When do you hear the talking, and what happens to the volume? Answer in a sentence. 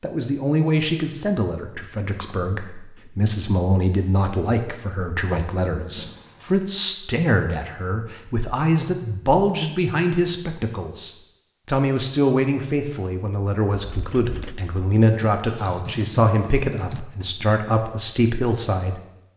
The talking can be heard from 0.0 to 19.3 s, at a steady volume.